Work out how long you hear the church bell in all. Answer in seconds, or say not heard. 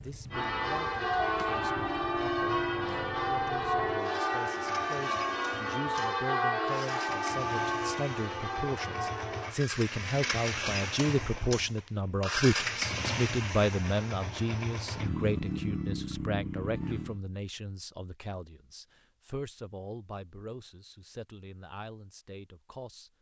9 s.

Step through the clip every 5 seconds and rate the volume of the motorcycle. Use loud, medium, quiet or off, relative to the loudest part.
quiet, medium, loud, loud, off.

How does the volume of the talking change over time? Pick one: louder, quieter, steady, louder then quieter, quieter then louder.
louder then quieter.